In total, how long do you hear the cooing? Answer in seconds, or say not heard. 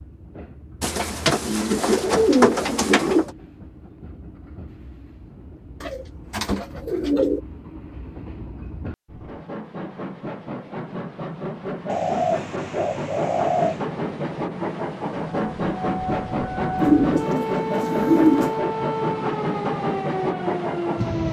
8 s.